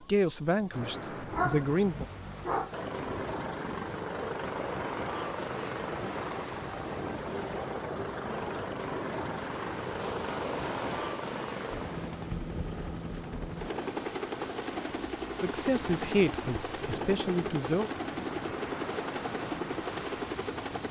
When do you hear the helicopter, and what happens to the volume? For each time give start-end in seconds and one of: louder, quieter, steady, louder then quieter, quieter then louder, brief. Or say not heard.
2.7-20.8 steady.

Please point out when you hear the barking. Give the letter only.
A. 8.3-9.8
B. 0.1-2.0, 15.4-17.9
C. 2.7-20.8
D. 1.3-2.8
D.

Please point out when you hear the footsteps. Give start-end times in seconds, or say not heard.
not heard.